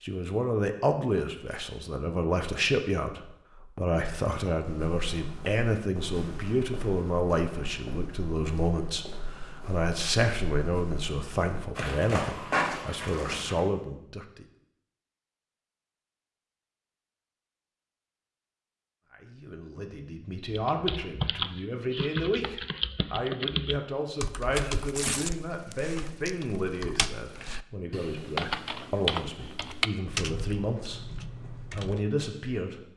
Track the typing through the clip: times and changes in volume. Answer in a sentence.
You can hear the typing from 20.5 to 32.0 s, getting quieter then louder.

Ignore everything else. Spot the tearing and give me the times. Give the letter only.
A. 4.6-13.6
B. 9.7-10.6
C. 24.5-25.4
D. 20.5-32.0
C.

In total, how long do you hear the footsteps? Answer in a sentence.
The footsteps can be heard for 9 seconds in total.